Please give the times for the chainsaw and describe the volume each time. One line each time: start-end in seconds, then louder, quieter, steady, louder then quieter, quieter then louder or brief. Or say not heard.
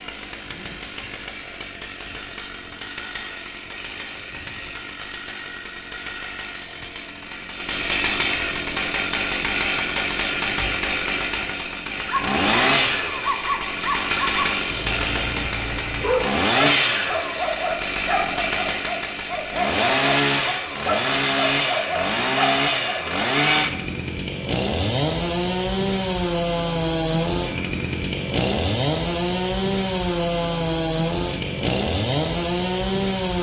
0.0-33.3 louder.